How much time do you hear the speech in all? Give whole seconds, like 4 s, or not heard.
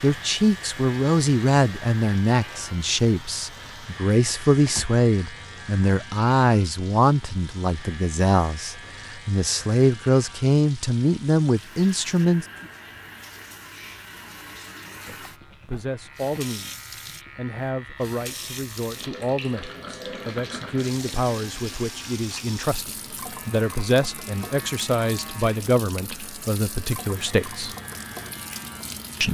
25 s.